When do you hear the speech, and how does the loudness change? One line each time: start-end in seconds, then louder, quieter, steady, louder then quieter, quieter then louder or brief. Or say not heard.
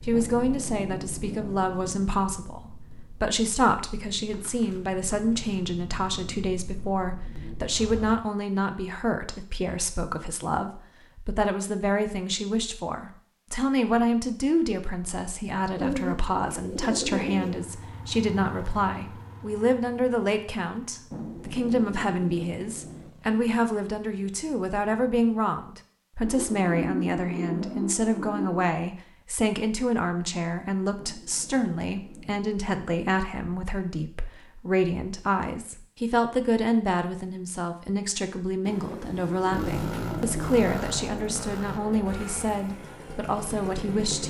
0.1-44.2 steady.